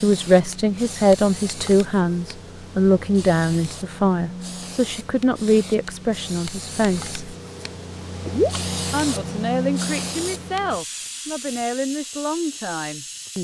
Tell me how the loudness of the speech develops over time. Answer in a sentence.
The volume of the speech goes down.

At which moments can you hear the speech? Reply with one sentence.
The speech can be heard from 0.0 to 7.2 s and from 8.9 to 13.4 s.